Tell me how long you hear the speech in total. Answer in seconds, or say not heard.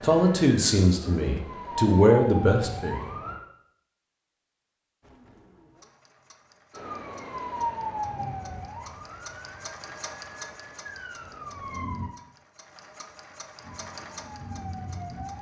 3 s.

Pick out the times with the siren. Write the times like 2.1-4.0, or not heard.
0.0-3.4, 6.7-12.1, 13.6-15.3.